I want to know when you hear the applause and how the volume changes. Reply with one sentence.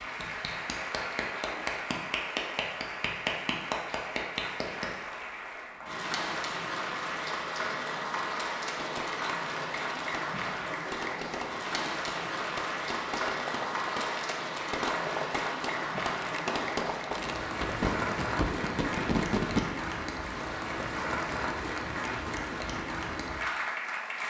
The applause can be heard from 0.0 to 24.2 s, at a steady volume.